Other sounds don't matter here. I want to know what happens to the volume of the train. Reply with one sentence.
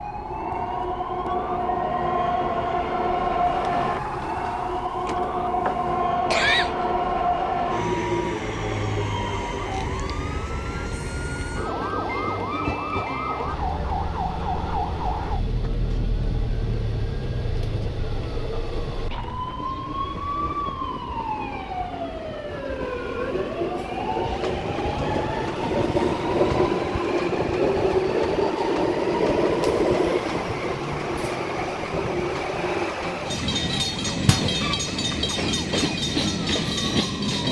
The volume of the train goes down, then up.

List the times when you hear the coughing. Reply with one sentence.
The coughing can be heard from 6.3 to 6.8 s.